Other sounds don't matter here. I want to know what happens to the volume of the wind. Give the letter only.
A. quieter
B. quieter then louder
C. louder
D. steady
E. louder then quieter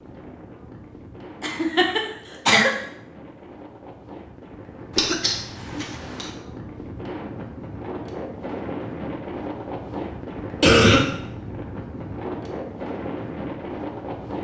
C.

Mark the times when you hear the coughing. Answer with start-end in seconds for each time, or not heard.
1.4-2.7, 5.0-6.3, 10.6-11.1.